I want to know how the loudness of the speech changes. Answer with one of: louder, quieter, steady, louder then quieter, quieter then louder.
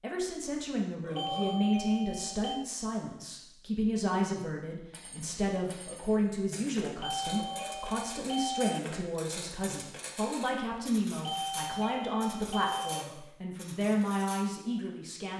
steady.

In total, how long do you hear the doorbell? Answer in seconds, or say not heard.
5 s.